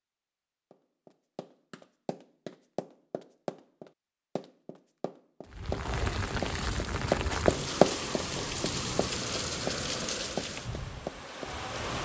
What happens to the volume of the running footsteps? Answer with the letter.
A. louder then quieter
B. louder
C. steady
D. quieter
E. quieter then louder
A.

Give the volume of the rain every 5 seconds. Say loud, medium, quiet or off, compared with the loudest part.
off, loud, loud.